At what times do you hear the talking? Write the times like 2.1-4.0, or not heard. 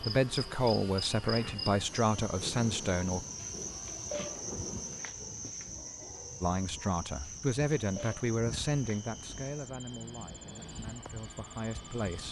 0.0-3.2, 6.4-12.2.